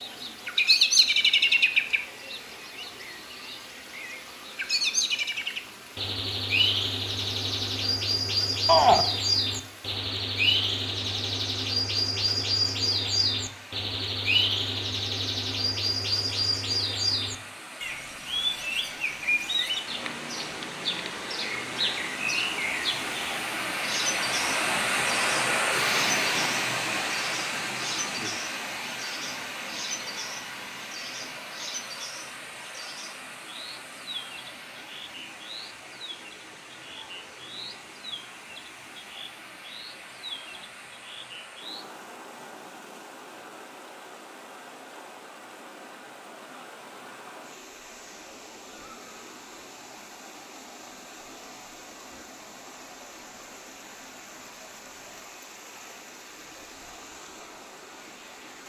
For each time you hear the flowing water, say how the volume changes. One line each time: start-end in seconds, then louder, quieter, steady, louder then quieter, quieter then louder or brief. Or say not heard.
0.0-58.6 louder then quieter.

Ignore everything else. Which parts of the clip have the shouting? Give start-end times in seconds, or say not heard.
8.7-9.1.